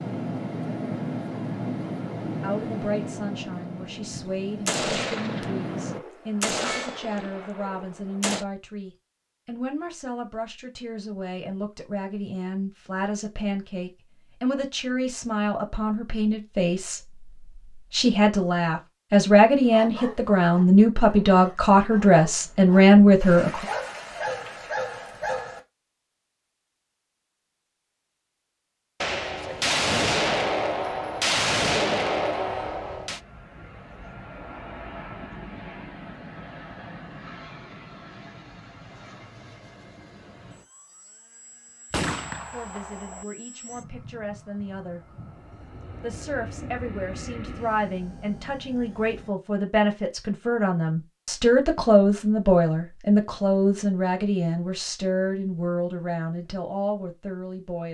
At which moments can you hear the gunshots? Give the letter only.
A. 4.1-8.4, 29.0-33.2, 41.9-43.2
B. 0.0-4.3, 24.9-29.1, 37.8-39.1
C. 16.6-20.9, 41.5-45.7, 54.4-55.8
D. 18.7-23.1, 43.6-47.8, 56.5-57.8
A.